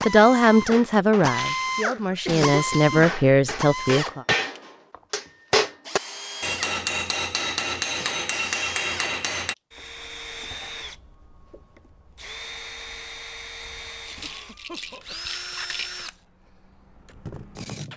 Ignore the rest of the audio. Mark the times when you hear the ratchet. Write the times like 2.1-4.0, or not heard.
not heard.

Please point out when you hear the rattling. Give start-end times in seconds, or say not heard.
1.2-1.7, 14.1-16.1.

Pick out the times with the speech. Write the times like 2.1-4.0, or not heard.
0.0-4.2.